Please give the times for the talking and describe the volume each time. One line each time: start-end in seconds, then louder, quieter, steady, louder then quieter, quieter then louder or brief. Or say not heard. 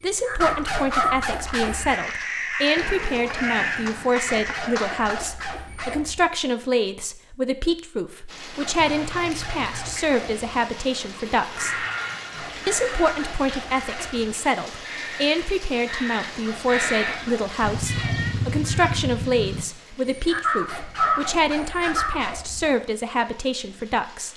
0.0-11.8 steady
12.7-24.3 steady.